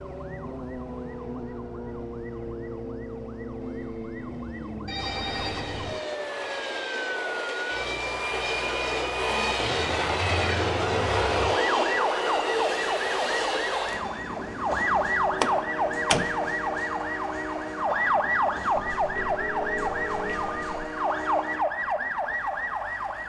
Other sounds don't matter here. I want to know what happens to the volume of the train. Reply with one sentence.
The volume of the train goes up, then down.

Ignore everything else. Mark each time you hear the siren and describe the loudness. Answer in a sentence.
The siren can be heard from 0.0 to 23.2 s, getting louder.